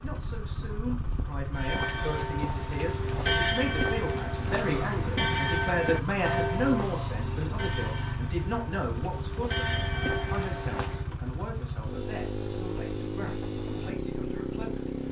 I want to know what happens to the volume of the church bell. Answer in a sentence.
The volume of the church bell goes down, then up.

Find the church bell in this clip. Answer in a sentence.
You can hear the church bell from 1.6 to 11.1 s.